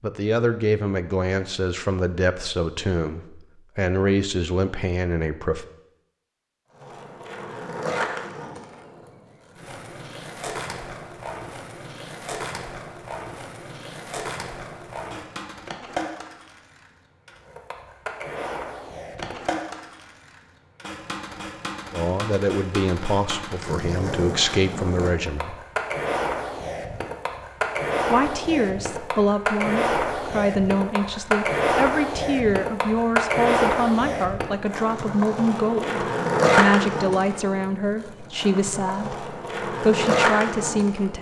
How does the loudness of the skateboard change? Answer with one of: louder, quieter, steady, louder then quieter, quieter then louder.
louder.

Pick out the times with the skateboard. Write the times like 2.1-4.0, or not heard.
6.7-41.1.